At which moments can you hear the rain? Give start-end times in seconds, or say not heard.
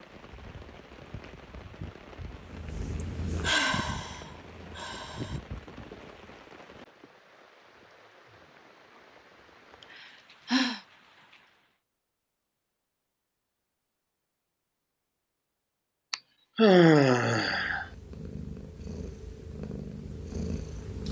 0.0-11.5.